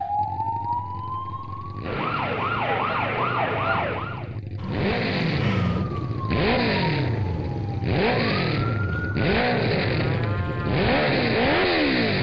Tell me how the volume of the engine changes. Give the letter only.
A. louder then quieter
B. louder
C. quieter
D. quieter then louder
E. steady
B.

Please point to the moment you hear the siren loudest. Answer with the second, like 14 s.
3 s.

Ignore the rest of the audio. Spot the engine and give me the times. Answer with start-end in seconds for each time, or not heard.
0.0-12.1.